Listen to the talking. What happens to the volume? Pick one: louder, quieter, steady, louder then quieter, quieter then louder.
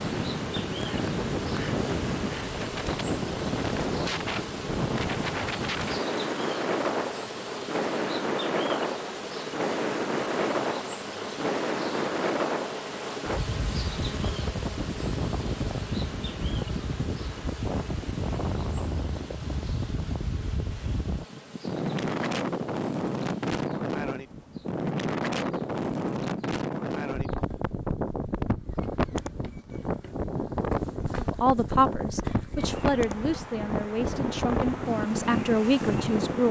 quieter then louder.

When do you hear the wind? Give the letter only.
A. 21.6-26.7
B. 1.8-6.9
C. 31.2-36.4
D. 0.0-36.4
D.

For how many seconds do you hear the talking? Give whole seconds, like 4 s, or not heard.
5 s.